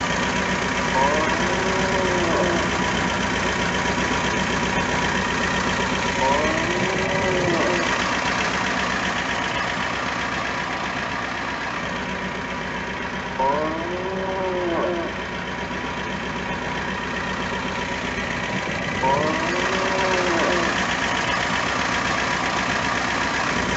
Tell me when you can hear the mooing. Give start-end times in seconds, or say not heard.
0.9-2.7, 6.2-7.9, 13.3-15.2, 19.0-20.8.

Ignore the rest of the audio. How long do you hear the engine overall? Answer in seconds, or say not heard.
24 s.